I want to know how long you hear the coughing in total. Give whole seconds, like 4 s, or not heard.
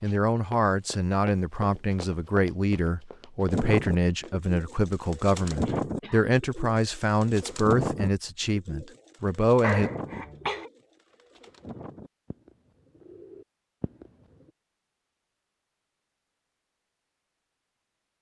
2 s.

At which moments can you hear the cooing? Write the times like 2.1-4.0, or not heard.
3.5-14.5.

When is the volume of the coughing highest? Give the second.
10 s.